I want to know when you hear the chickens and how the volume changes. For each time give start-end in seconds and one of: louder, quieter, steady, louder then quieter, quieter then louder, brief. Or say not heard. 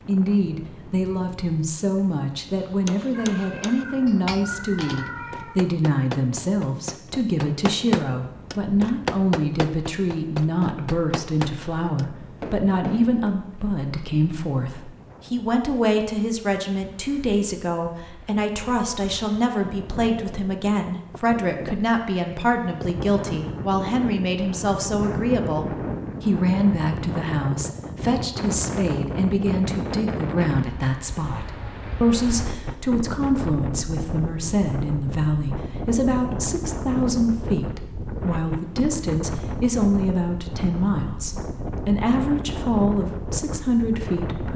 not heard.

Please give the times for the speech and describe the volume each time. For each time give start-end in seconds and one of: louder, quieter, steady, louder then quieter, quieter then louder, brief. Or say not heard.
0.1-44.5 steady.